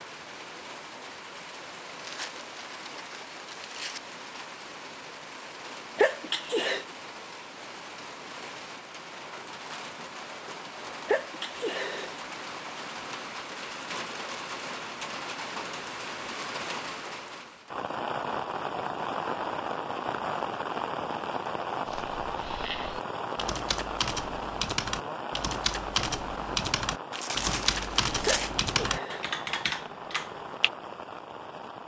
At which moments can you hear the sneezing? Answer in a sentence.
You can hear the sneezing from 6.0 to 6.8 s, from 11.1 to 12.2 s and from 28.2 to 29.3 s.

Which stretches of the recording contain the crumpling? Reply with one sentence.
You can hear the crumpling from 1.9 to 4.0 s and from 27.1 to 28.6 s.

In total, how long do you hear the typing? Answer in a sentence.
The typing can be heard for 9 seconds in total.